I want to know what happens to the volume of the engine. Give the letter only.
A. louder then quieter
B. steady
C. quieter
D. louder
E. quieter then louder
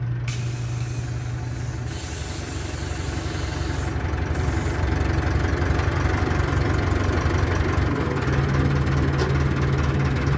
D.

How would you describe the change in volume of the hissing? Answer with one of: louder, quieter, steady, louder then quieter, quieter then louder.
quieter.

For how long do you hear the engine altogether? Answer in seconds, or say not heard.
10 s.